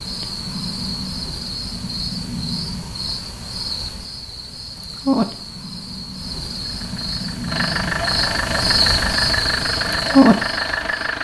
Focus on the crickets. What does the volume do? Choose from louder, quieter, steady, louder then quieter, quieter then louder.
louder.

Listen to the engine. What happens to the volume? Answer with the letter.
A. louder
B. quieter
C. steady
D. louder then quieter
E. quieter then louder
A.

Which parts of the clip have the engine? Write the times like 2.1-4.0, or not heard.
6.6-11.2.